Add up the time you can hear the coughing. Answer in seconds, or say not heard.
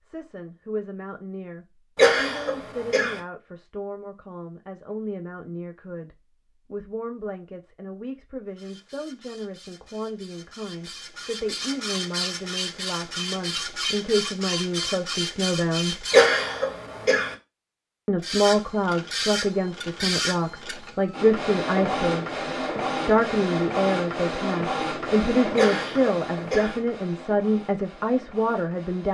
4 s.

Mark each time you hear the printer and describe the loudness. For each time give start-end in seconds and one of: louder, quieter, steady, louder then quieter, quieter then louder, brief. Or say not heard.
8.6-16.4 louder
18.2-29.1 quieter.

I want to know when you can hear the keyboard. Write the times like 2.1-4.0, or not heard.
not heard.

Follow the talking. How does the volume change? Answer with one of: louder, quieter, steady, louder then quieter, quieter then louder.
louder.